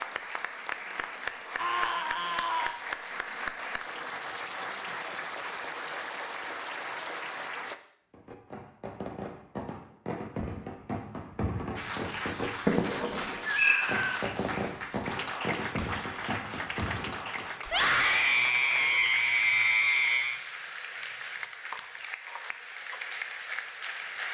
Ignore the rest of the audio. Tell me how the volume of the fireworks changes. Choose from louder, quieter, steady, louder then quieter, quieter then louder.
louder then quieter.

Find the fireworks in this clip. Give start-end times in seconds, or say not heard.
8.1-17.5.